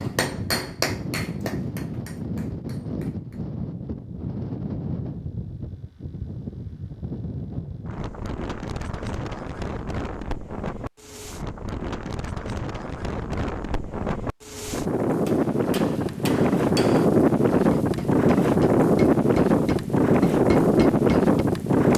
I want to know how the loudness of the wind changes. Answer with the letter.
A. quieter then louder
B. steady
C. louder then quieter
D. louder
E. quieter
D.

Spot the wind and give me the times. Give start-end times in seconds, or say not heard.
0.0-21.9.